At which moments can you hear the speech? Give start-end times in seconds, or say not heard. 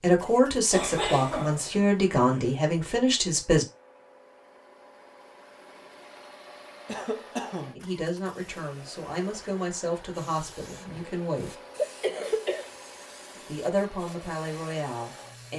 0.0-3.6, 7.8-11.5, 13.4-15.5.